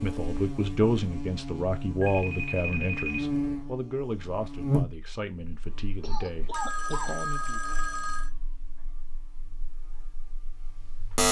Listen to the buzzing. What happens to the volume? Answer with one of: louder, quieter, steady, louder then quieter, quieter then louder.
louder then quieter.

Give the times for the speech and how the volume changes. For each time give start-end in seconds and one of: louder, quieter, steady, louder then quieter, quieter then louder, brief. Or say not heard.
0.0-7.6 quieter.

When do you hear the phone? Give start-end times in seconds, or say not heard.
2.0-3.2, 6.2-8.3.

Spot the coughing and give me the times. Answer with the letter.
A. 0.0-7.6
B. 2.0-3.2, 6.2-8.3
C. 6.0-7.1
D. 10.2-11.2
C.